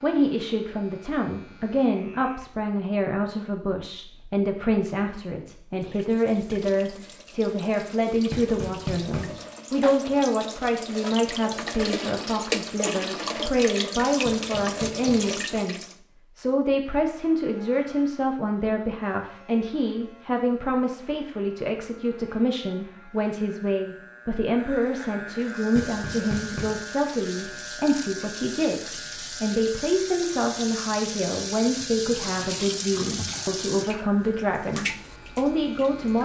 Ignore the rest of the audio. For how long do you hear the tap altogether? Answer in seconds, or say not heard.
21 s.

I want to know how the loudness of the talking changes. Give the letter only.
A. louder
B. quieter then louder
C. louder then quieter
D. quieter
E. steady
E.